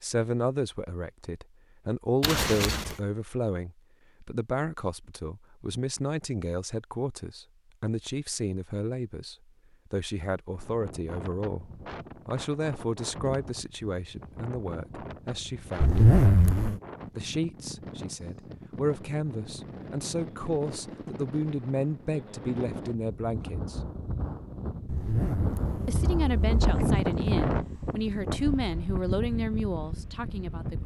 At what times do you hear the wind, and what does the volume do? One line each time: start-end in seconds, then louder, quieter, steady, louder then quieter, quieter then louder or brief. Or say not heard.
10.5-30.8 louder.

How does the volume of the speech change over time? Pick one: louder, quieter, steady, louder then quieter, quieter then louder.
steady.